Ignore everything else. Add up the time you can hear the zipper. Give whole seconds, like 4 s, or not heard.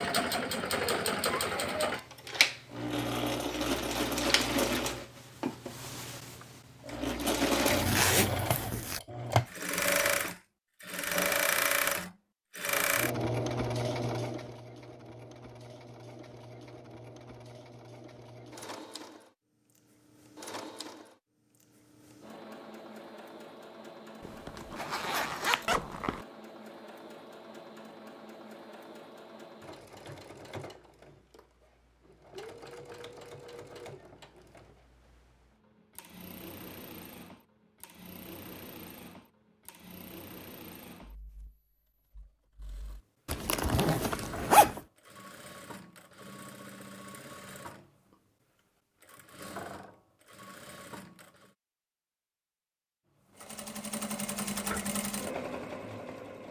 5 s.